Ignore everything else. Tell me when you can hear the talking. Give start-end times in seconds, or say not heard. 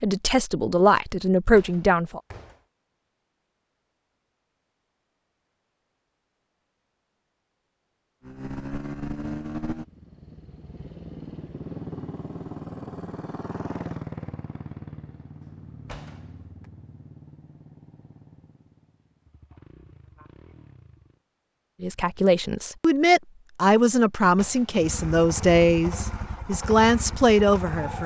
0.0-2.2, 21.8-28.0.